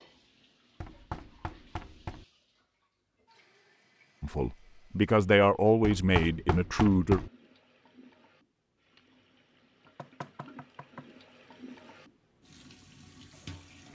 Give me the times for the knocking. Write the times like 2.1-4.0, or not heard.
0.8-2.2, 5.8-7.3, 9.9-11.1.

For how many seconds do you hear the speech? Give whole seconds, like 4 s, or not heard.
3 s.